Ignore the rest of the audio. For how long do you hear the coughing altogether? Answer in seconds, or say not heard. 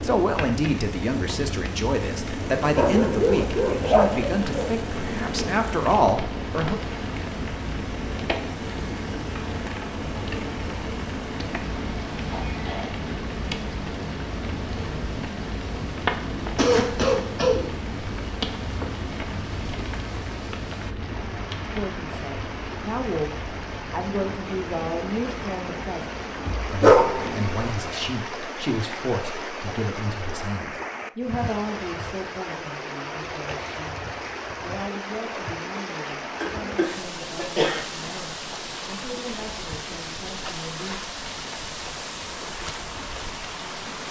3 s.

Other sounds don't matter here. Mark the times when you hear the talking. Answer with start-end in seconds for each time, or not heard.
0.0-6.8, 21.8-34.0, 34.6-41.0.